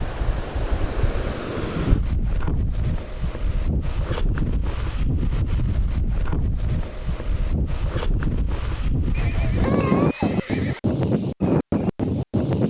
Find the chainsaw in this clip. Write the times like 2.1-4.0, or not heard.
not heard.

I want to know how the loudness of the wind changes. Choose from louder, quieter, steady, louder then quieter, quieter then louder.
louder.